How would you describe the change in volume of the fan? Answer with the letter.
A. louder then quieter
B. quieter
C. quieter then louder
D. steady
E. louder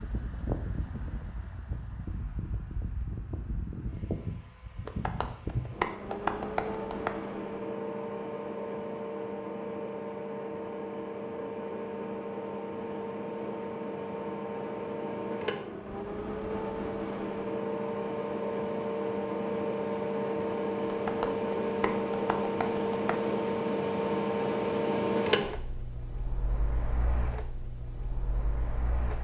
E.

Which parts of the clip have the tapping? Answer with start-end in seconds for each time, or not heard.
4.8-7.1, 20.9-23.2.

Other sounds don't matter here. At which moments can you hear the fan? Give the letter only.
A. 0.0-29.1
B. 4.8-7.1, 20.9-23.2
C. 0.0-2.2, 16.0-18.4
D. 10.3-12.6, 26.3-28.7
A.